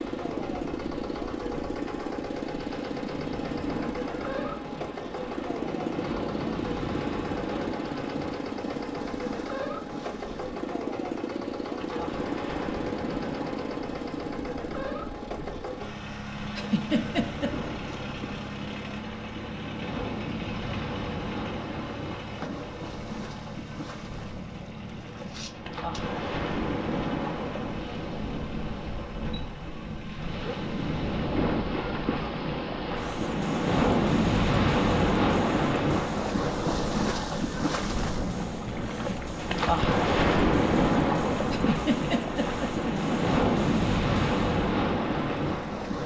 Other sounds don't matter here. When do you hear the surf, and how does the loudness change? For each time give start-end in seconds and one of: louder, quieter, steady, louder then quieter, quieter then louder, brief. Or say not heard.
0.0-46.0 louder.